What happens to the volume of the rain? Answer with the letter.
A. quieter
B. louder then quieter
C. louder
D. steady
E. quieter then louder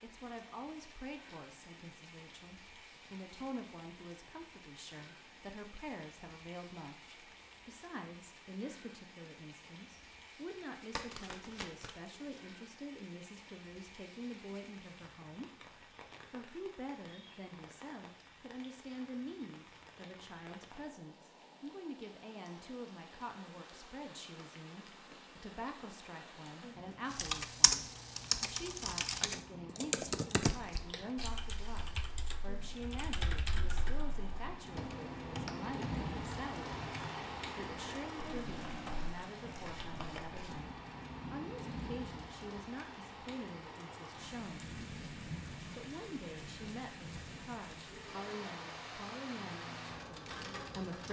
C.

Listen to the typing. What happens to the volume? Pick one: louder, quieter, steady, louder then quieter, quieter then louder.
quieter.